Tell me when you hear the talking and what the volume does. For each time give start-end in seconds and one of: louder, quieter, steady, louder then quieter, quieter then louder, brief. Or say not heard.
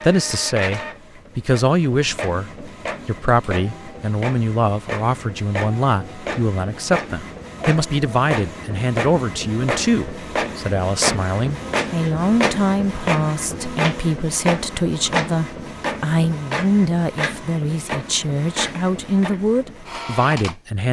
0.0-20.8 steady.